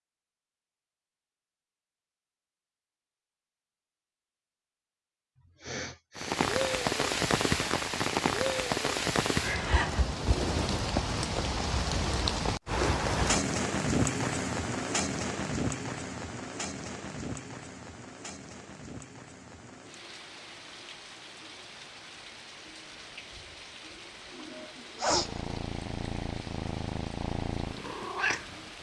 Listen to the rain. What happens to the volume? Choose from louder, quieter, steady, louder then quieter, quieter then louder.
quieter.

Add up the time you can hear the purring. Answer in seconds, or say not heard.
4 s.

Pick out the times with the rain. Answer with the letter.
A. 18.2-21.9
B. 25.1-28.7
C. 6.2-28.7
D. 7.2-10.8
C.